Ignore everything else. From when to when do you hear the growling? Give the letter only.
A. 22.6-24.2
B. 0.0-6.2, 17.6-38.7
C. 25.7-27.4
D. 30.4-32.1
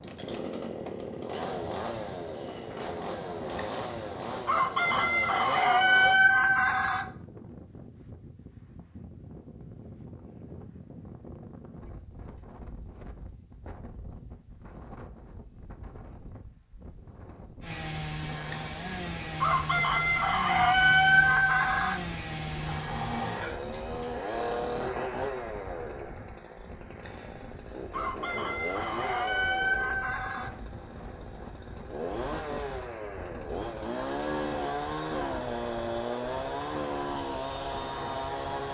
A.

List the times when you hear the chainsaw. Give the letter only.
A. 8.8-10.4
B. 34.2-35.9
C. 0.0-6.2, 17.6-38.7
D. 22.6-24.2
C.